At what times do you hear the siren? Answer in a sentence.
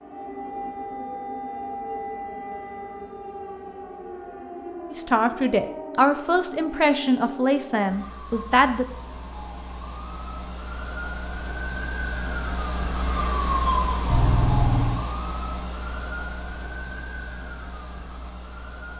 The siren can be heard from 0.0 to 18.9 s.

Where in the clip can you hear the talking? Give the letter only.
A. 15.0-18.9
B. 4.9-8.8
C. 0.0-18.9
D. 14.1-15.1
B.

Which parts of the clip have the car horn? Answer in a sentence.
You can hear the car horn from 14.1 to 15.1 s.